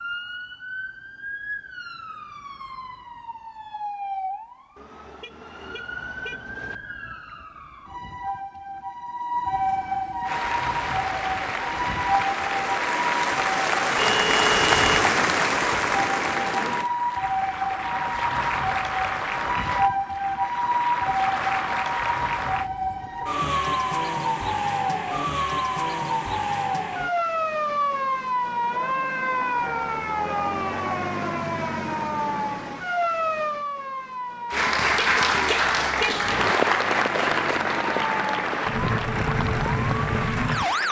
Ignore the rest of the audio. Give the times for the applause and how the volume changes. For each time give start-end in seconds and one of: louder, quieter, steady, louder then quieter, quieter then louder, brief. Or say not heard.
10.2-22.7 louder then quieter
34.5-40.8 quieter.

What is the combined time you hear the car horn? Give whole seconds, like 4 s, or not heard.
5 s.